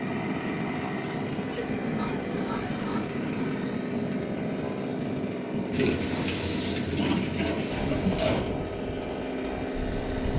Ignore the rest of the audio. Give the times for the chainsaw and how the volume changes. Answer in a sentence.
You can hear the chainsaw from 0.0 to 10.3 s, at a steady volume.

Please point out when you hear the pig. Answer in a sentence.
You can hear the pig from 1.5 to 3.1 s and from 5.7 to 8.6 s.